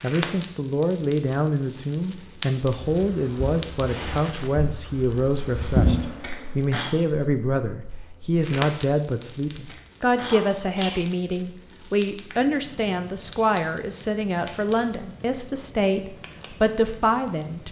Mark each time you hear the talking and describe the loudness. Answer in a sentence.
You can hear the talking from 0.0 to 17.6 s, at a steady volume.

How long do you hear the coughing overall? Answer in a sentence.
You can hear the coughing for 2 seconds altogether.